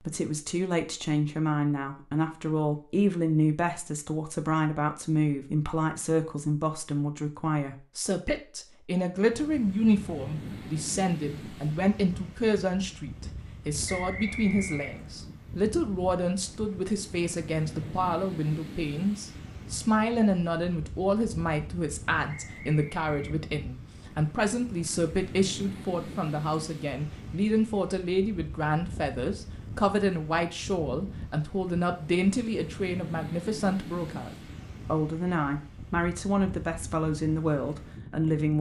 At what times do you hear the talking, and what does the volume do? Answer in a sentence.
The talking can be heard from 0.1 to 38.5 s, at a steady volume.